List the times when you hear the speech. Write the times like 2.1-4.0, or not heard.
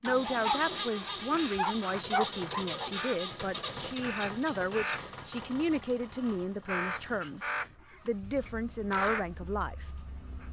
0.0-7.5, 8.1-9.8.